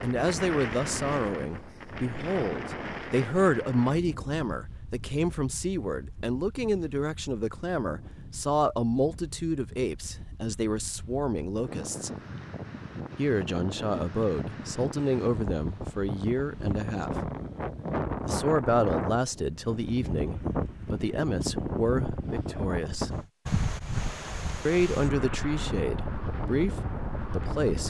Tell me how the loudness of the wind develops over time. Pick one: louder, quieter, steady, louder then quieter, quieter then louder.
quieter then louder.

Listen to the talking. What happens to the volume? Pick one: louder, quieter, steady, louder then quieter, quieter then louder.
steady.